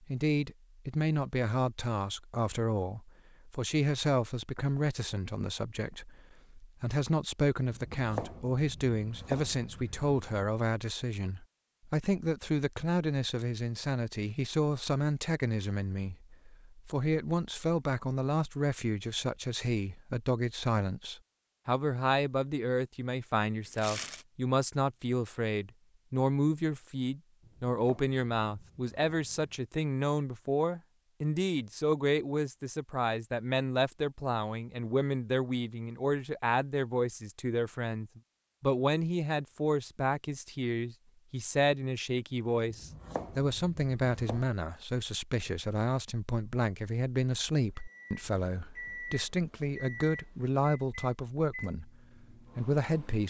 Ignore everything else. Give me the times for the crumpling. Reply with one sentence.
You can hear the crumpling from 23.6 to 24.2 s.